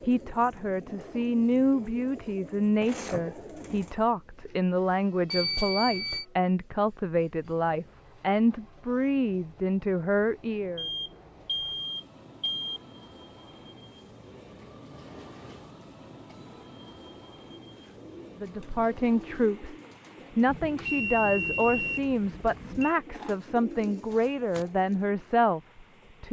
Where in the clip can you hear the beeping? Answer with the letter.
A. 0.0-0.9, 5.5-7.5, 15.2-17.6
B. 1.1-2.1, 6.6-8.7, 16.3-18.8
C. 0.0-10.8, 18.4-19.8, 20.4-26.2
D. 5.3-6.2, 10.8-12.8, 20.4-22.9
D.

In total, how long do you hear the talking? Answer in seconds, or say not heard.
18 s.